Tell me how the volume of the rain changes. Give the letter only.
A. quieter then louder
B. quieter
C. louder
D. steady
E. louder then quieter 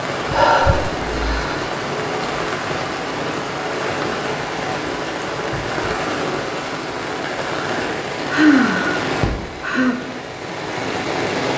D.